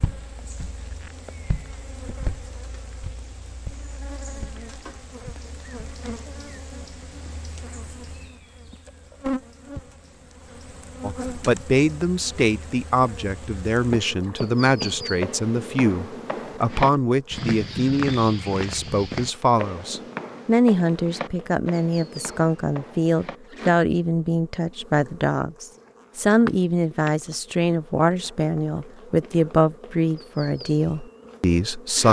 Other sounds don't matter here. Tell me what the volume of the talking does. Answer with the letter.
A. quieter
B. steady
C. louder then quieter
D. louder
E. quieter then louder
B.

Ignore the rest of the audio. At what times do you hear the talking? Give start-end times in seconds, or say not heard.
11.0-32.0.